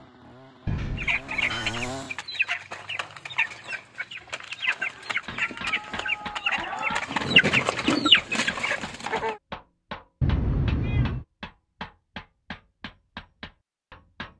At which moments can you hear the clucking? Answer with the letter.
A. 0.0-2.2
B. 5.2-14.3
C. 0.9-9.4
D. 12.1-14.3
C.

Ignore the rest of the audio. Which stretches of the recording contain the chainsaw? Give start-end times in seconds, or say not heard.
0.0-2.2.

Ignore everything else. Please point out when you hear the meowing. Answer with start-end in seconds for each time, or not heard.
0.7-1.8, 5.3-7.0, 10.2-11.2.